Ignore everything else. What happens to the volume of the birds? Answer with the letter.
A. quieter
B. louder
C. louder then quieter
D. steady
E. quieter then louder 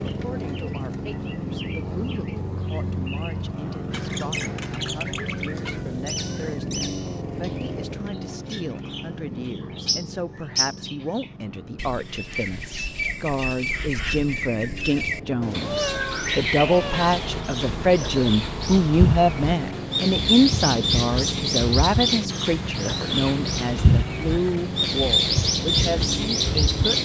B.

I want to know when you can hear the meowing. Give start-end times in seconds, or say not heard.
5.7-6.7, 15.4-17.4.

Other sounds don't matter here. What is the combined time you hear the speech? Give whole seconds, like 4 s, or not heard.
27 s.